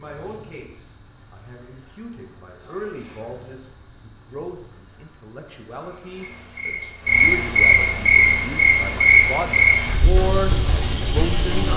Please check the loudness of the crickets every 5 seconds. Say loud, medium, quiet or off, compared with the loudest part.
quiet, loud, medium.